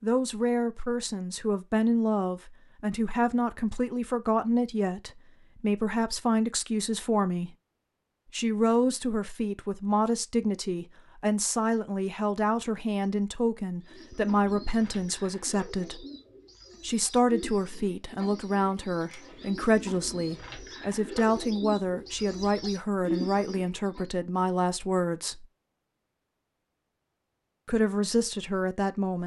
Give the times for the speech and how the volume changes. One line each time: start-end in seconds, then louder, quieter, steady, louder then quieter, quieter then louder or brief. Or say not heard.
0.0-7.5 steady
8.3-16.1 steady
16.8-25.4 steady
27.6-29.2 brief.